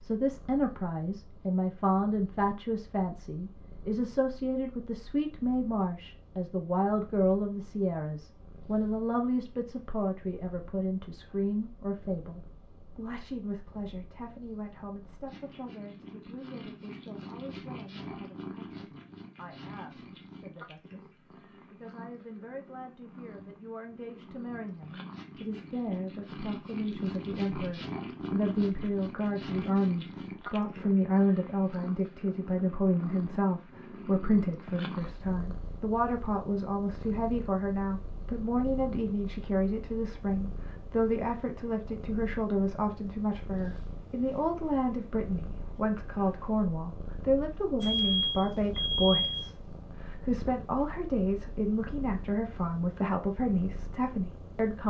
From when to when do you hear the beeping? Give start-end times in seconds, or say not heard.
47.8-49.5.